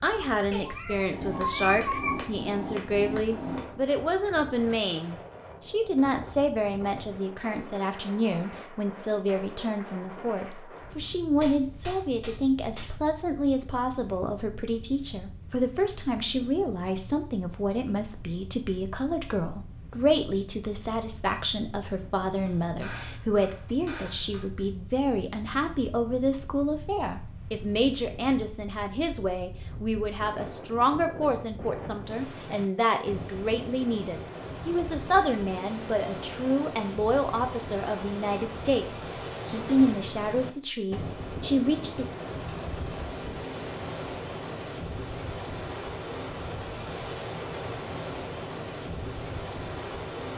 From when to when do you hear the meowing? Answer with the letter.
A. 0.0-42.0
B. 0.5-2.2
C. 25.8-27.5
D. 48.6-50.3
B.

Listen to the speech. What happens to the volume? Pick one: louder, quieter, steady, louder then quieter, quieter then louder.
steady.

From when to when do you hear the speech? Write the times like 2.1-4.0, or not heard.
0.0-42.0.